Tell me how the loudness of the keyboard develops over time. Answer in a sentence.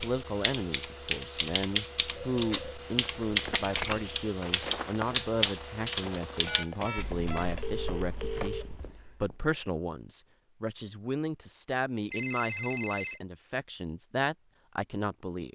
The volume of the keyboard goes down.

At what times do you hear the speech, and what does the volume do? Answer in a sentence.
You can hear the speech from 0.0 to 15.5 s, at a steady volume.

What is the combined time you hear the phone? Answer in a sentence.
The phone can be heard for 4 seconds in total.